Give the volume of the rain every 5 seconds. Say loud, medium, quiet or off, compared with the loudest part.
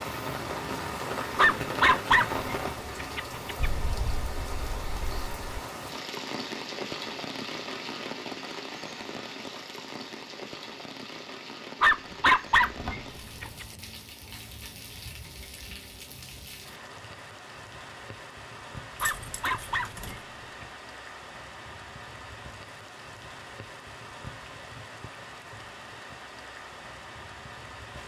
loud, loud, medium, medium, medium, medium.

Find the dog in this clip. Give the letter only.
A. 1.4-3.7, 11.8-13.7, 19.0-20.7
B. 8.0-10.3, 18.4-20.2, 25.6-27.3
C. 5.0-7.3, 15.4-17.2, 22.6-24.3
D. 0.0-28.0
A.